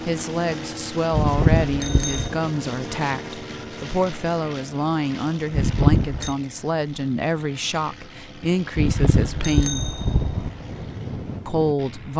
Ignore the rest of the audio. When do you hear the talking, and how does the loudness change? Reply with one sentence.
The talking can be heard from 0.1 to 9.9 s, at a steady volume; and briefly from 11.4 to 12.1 s.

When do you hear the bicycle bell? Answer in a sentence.
You can hear the bicycle bell from 1.1 to 2.3 s, from 5.5 to 6.3 s and from 8.8 to 10.5 s.